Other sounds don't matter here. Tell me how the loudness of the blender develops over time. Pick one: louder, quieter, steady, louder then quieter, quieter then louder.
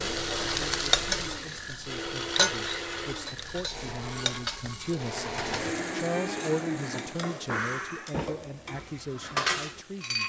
quieter then louder.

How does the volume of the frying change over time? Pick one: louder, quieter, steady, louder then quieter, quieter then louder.
quieter.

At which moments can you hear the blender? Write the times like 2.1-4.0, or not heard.
0.0-8.2.